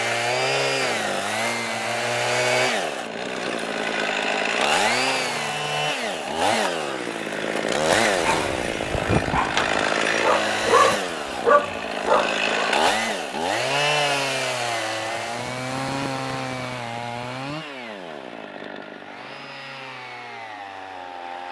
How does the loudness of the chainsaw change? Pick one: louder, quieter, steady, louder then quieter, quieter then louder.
quieter.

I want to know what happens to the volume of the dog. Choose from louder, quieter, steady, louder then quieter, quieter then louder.
louder.